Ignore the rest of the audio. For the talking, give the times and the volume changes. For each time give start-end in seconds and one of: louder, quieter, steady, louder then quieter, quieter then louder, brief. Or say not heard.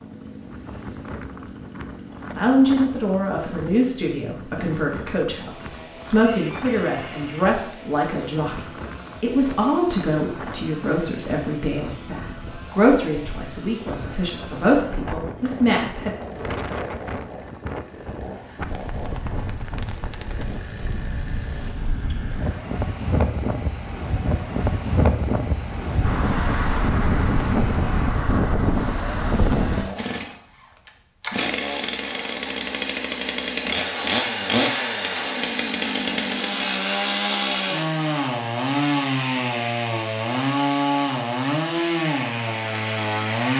2.4-16.1 steady.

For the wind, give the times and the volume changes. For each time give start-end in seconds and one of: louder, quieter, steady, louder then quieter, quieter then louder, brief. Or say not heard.
0.0-29.9 louder.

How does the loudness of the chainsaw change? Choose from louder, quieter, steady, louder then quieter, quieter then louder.
louder.